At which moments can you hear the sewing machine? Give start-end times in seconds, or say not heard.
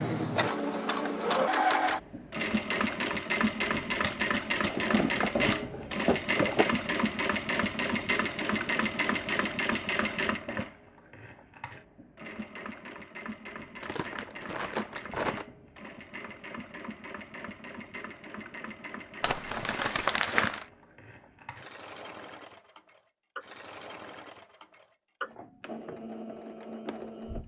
0.0-27.4.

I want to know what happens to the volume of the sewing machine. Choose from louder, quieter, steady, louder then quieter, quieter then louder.
quieter.